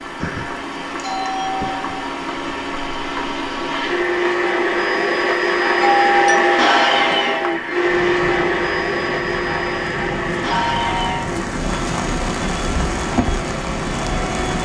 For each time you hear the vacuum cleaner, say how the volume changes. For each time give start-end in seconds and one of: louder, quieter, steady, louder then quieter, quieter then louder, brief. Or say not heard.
0.0-14.6 louder then quieter.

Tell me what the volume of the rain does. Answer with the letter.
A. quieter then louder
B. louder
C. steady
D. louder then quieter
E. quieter
B.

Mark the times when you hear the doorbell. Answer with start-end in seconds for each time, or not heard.
0.2-2.0, 5.8-7.5, 10.7-11.3.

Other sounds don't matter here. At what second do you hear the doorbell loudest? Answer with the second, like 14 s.
6 s.